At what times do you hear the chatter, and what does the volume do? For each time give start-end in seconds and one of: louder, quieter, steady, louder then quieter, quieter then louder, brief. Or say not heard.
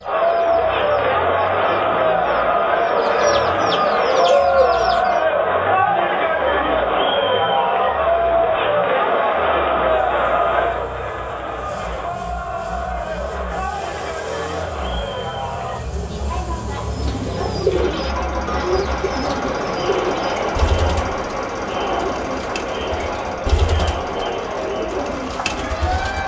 0.0-26.2 quieter.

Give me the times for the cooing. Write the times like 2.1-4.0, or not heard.
0.0-5.1, 16.9-26.2.